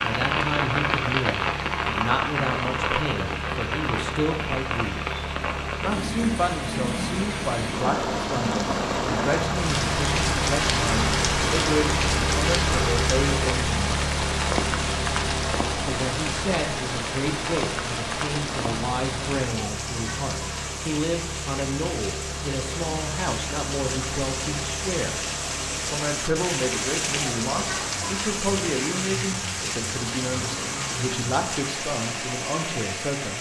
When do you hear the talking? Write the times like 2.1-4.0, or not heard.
0.0-5.0, 5.8-13.8, 15.8-25.2, 25.9-33.3.